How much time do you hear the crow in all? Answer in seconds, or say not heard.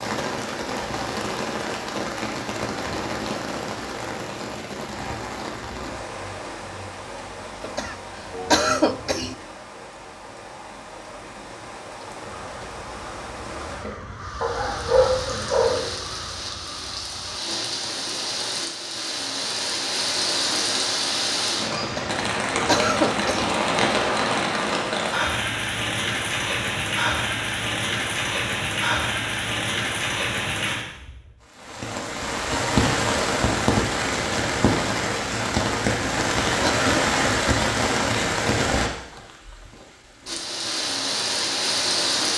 5 s.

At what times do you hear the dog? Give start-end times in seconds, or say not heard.
14.4-15.9.